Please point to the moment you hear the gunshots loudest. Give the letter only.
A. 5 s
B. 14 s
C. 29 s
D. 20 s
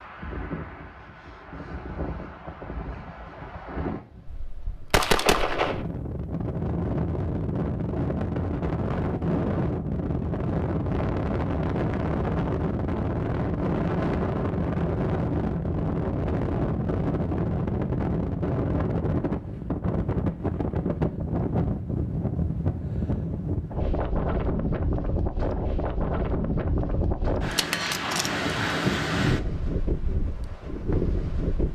A.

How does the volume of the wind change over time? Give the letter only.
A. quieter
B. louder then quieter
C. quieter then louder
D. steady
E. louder
E.